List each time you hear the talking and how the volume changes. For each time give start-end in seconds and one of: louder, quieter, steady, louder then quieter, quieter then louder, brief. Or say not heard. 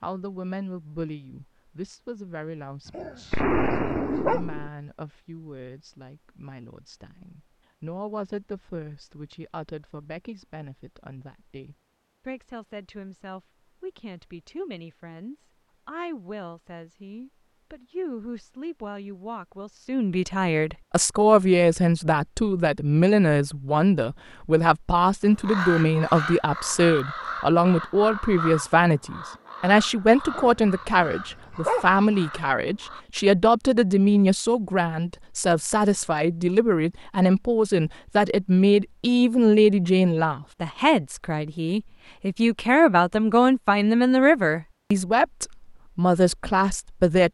0.0-47.2 louder.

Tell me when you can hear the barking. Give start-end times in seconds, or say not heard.
2.9-4.5, 30.2-31.9.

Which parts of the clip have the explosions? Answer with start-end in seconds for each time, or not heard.
3.3-4.7.